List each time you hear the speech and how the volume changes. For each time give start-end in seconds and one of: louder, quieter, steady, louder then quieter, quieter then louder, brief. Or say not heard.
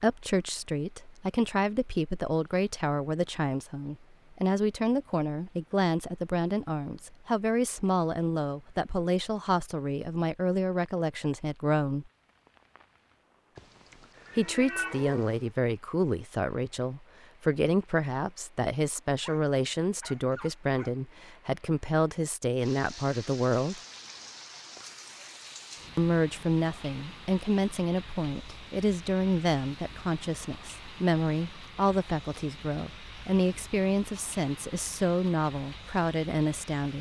0.0-12.1 steady
14.3-23.8 steady
25.9-36.9 steady.